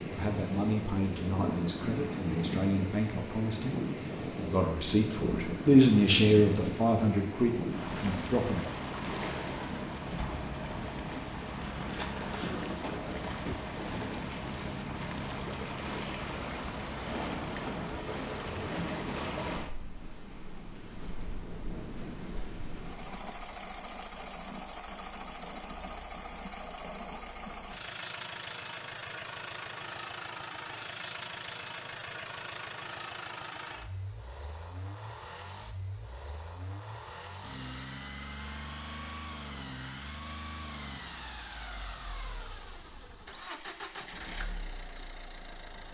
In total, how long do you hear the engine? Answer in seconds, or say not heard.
23 s.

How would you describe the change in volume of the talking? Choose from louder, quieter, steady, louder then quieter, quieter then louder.
louder then quieter.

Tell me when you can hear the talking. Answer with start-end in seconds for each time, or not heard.
0.0-8.7.